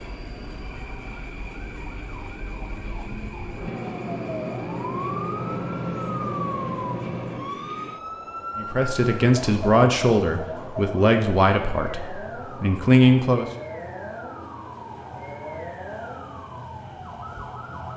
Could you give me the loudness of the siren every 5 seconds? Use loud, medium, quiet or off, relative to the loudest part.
medium, loud, medium, medium.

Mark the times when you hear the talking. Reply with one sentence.
You can hear the talking from 8.6 to 13.4 s.